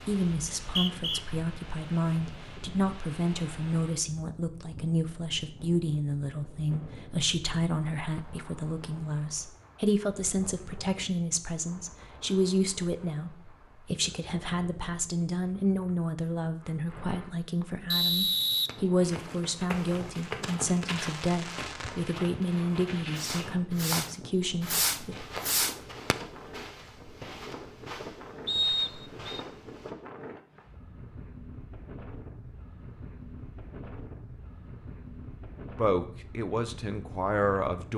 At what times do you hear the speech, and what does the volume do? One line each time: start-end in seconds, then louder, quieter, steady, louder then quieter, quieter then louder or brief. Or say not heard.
0.1-25.1 steady
35.8-37.9 brief.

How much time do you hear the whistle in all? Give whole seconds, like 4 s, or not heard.
3 s.